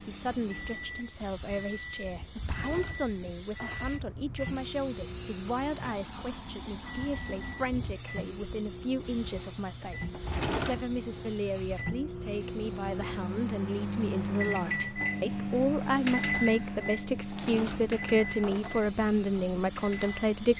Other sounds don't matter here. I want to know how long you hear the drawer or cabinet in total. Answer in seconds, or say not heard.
4 s.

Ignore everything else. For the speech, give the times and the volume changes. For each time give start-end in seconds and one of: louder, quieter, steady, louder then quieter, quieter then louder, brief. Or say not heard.
0.0-20.5 louder.